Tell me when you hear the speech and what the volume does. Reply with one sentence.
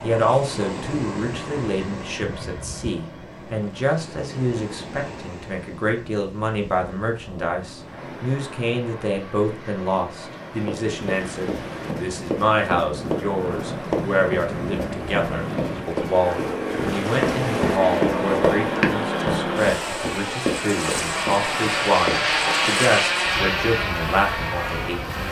The speech can be heard from 0.0 to 25.2 s, at a steady volume.